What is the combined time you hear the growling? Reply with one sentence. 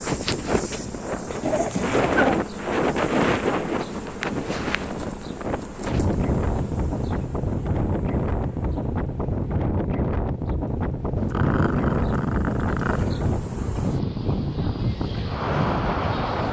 The growling can be heard for 3 seconds in total.